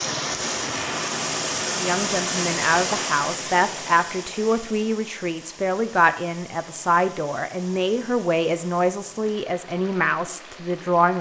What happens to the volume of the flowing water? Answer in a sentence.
The loudness of the flowing water goes down.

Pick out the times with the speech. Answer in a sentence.
The speech can be heard from 1.7 to 11.1 s.